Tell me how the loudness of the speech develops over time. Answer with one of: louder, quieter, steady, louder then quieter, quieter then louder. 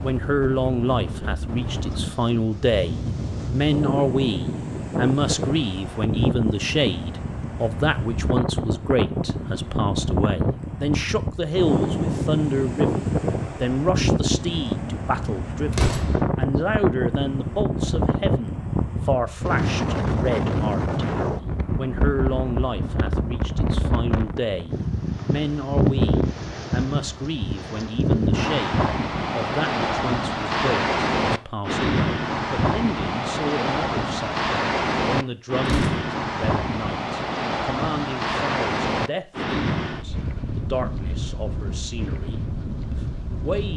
quieter.